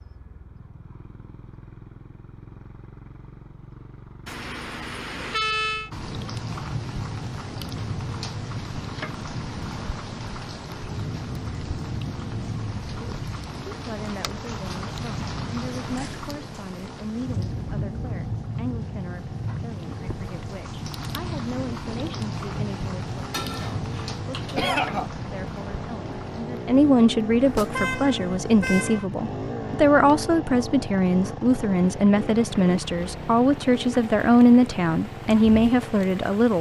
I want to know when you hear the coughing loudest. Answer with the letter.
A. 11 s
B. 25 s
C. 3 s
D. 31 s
B.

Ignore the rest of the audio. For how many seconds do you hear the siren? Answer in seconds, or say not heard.
not heard.